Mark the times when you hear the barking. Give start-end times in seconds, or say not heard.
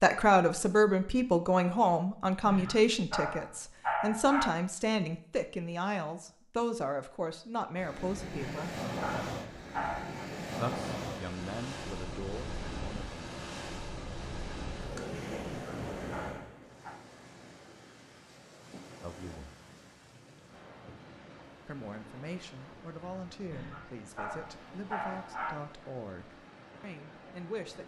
2.5-4.5, 8.3-10.2, 15.5-16.9, 23.5-25.5.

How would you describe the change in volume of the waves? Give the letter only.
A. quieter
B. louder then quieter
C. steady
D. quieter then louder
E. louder
A.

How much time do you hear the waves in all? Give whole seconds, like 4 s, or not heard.
20 s.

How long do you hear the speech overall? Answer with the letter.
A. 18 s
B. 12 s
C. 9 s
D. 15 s
A.